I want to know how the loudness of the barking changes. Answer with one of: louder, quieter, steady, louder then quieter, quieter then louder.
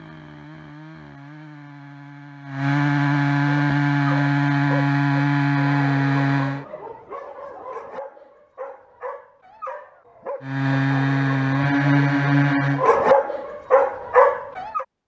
louder.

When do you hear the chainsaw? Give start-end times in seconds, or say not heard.
0.0-6.7, 10.4-13.0.